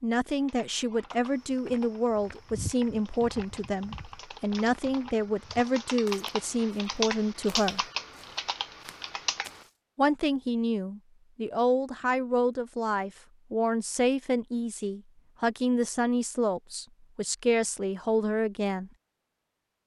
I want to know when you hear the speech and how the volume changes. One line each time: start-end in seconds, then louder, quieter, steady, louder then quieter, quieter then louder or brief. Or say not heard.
0.0-7.8 steady
9.9-18.9 steady.